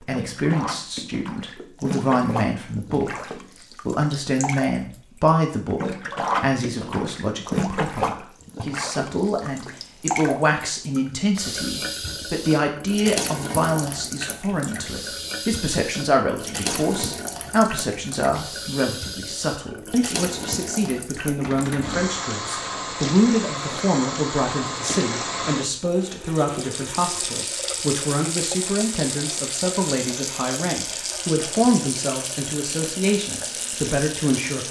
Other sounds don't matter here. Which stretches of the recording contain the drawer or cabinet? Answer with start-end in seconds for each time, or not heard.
21.4-22.2.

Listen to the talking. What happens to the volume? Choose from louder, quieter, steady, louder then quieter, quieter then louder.
steady.